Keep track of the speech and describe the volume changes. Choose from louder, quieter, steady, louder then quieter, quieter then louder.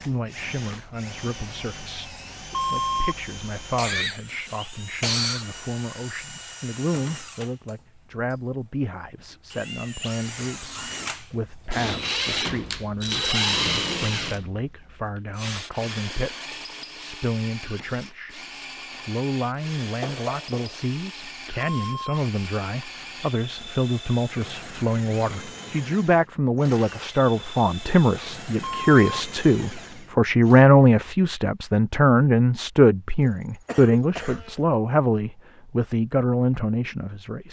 louder.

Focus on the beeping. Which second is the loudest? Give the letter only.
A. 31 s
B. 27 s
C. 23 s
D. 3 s
D.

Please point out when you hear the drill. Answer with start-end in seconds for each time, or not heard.
0.0-30.6.